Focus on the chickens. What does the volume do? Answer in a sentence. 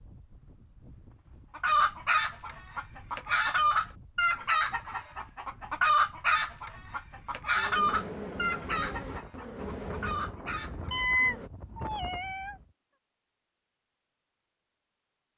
The volume of the chickens goes down.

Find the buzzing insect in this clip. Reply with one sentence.
The buzzing insect can be heard from 7.5 to 11.5 s.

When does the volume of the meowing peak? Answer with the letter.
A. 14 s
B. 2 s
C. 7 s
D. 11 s
D.